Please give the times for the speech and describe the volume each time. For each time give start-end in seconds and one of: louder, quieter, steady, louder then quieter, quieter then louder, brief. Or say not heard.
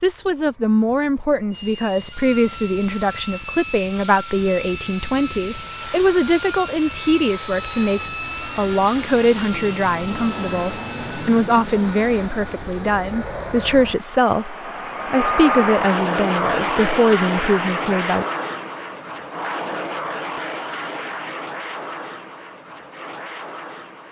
0.0-18.2 steady.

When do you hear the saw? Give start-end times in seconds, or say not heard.
1.5-11.4.